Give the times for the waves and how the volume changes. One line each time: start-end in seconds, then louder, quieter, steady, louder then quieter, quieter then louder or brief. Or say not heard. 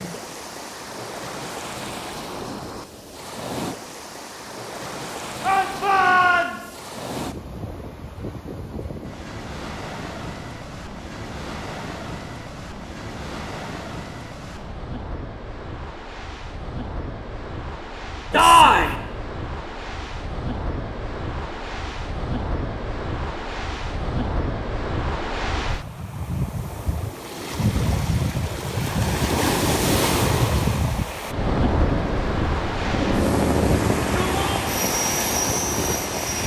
0.0-36.4 louder.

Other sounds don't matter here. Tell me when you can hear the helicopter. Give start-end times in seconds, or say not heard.
31.2-36.4.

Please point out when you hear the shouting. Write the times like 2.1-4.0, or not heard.
5.4-6.8, 18.3-18.9, 34.0-34.6.